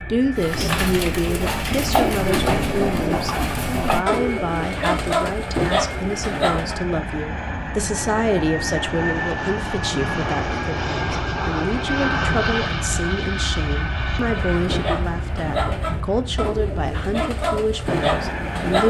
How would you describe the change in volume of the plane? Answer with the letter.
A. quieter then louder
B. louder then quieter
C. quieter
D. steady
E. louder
B.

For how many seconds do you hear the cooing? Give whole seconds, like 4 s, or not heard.
11 s.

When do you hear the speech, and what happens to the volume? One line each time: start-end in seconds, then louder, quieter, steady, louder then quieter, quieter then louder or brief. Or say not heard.
0.0-18.8 steady.